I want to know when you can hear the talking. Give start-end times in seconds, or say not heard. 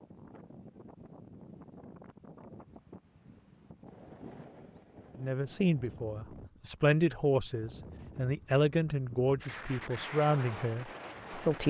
5.2-11.6.